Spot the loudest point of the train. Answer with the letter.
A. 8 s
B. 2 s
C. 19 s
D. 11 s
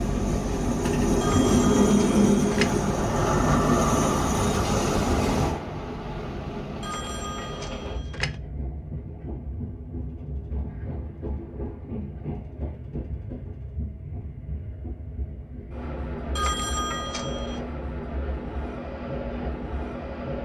B.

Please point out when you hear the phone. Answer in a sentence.
You can hear the phone from 1.2 to 2.8 s, from 6.8 to 8.3 s and from 16.4 to 17.6 s.